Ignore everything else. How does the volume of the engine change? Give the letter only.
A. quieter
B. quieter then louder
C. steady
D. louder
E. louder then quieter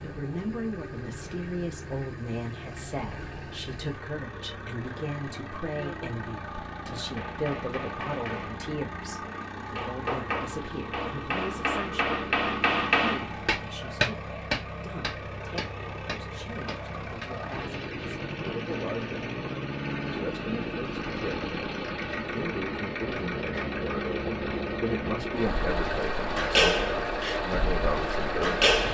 D.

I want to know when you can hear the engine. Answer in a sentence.
You can hear the engine from 0.0 to 28.8 s.